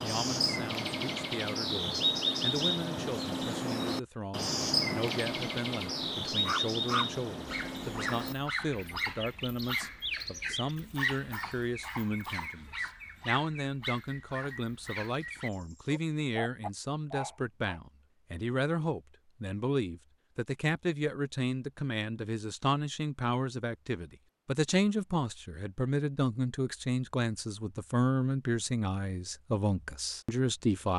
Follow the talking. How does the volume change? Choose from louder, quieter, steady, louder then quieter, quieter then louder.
louder.